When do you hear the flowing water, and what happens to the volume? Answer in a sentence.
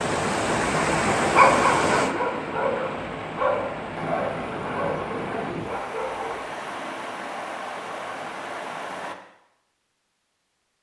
The flowing water can be heard from 0.0 to 9.2 s, getting quieter.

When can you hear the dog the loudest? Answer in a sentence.
The volume of the dog peaks at 2 seconds.